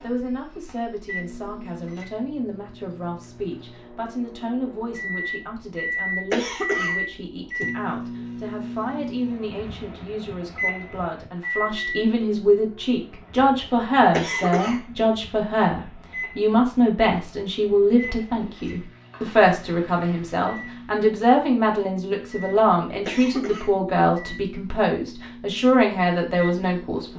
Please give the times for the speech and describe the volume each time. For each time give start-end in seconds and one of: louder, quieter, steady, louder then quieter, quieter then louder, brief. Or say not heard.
0.0-27.1 louder.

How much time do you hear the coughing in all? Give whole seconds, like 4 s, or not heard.
2 s.